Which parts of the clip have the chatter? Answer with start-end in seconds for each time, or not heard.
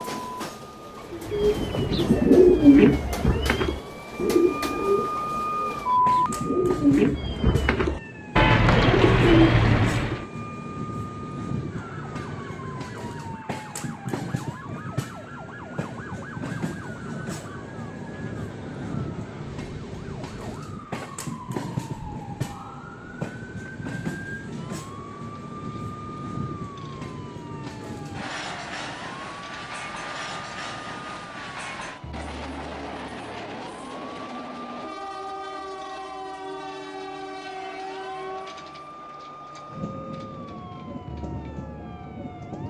not heard.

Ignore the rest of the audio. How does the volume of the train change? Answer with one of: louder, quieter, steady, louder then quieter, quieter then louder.
steady.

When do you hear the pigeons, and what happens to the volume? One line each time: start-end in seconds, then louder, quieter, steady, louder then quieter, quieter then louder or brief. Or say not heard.
1.1-10.2 quieter then louder.